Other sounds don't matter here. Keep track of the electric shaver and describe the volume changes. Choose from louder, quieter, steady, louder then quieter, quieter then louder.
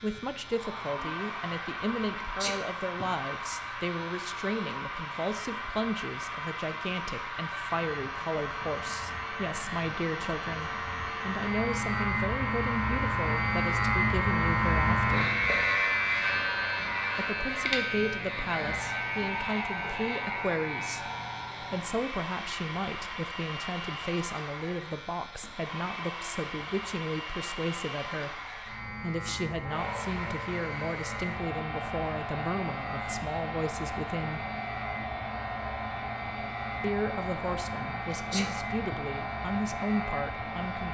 louder then quieter.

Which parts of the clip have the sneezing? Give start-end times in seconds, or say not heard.
2.1-3.1, 38.1-39.0.